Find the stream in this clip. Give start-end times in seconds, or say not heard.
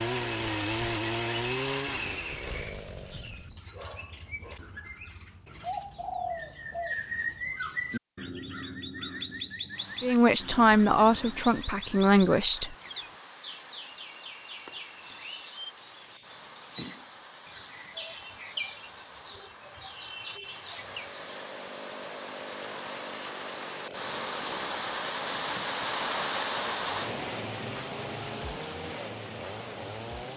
9.7-30.3.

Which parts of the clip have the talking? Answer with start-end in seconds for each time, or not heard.
10.0-12.8.